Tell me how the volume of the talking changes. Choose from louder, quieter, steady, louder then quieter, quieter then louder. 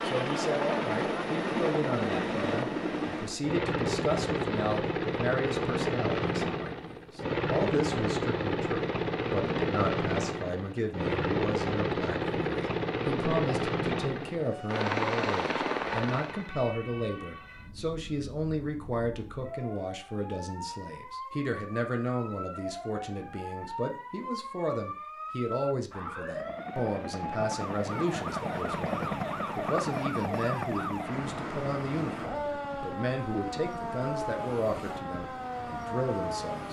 steady.